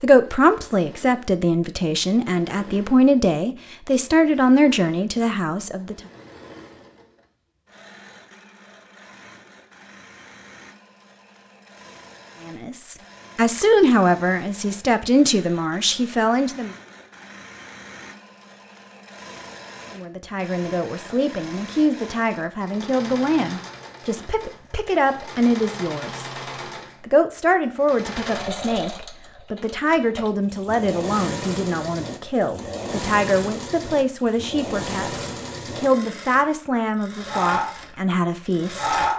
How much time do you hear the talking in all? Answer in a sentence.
You can hear the talking for 29 seconds altogether.